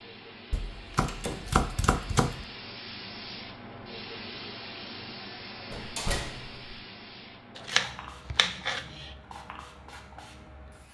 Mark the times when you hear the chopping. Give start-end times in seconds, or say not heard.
0.5-2.5, 7.5-9.1.